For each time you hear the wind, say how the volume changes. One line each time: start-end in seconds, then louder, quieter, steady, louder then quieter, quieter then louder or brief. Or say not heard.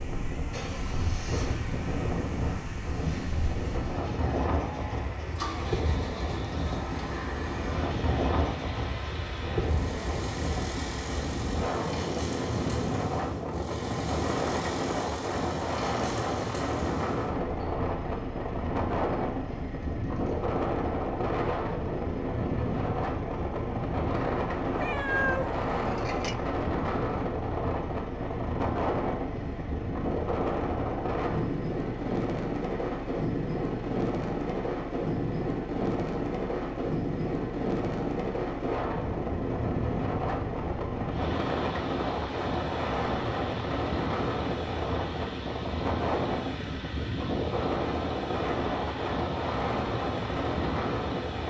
0.0-51.4 steady.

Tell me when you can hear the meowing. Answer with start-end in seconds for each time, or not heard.
24.8-26.4.